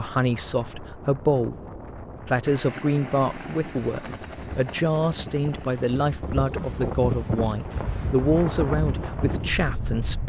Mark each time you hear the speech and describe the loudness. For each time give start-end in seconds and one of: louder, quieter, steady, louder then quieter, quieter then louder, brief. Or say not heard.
0.0-1.6 brief
2.2-10.2 steady.